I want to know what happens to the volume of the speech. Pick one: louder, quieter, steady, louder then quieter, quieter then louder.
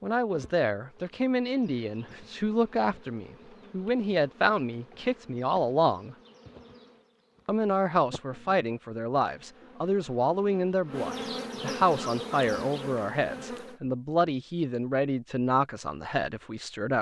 steady.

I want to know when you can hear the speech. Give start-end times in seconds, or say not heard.
0.0-6.2, 7.5-16.9.